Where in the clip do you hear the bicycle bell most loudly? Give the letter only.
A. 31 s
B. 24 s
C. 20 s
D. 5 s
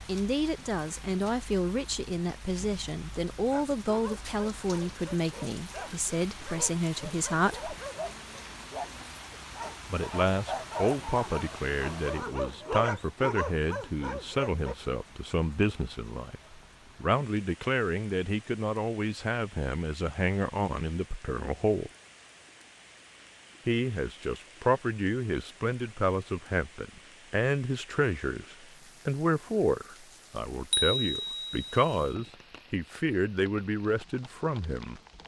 A.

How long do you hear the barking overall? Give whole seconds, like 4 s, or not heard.
11 s.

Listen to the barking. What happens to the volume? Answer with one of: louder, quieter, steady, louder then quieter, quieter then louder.
louder.